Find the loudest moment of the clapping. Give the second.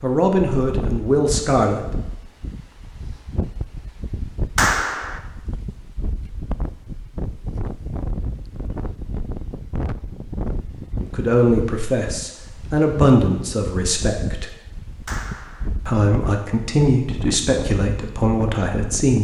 5 s.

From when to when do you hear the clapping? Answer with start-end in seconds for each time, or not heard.
4.5-5.2, 15.1-15.7.